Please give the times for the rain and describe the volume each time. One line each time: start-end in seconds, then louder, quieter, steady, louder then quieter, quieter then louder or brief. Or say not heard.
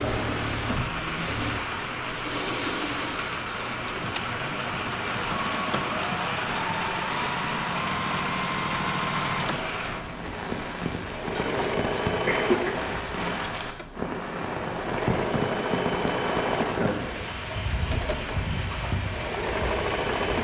0.0-20.3 steady.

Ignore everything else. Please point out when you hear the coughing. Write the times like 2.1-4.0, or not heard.
11.3-12.8.